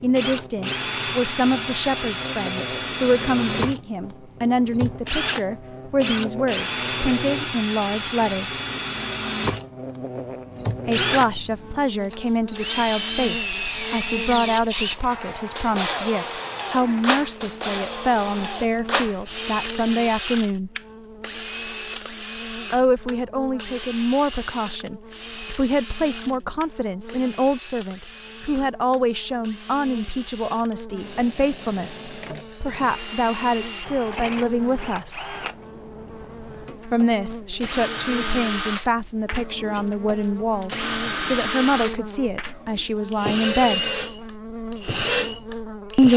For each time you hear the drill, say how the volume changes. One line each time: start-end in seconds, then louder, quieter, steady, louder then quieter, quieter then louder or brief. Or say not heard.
0.0-46.1 quieter then louder.